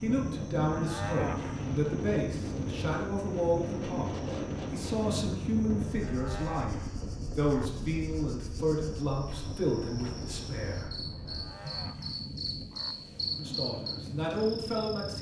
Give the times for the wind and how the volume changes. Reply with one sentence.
You can hear the wind from 0.0 to 15.1 s, getting quieter.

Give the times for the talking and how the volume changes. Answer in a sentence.
You can hear the talking from 0.0 to 10.9 s, at a steady volume; and briefly from 13.3 to 15.1 s.